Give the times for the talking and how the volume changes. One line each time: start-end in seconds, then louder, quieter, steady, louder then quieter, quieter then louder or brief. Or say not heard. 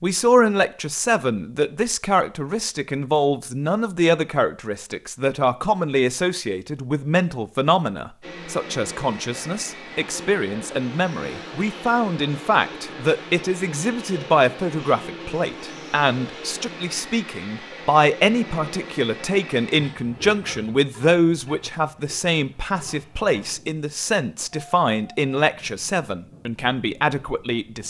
0.0-27.8 steady.